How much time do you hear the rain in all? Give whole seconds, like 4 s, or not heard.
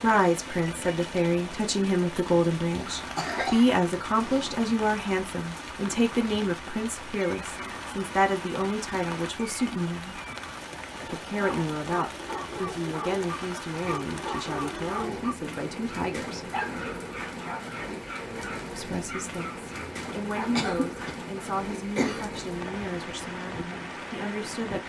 25 s.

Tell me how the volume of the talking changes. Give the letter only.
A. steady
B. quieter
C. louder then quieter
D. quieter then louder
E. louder
B.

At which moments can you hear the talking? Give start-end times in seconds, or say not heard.
0.0-10.2, 11.1-16.5, 18.7-24.8.